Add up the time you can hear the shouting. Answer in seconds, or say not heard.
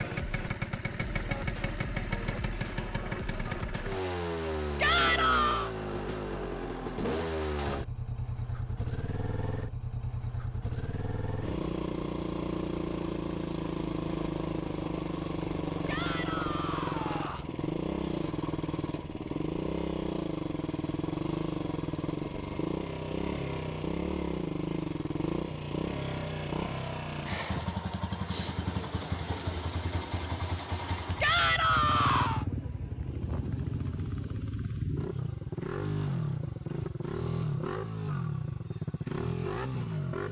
4 s.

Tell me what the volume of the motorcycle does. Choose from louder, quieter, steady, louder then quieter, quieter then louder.
steady.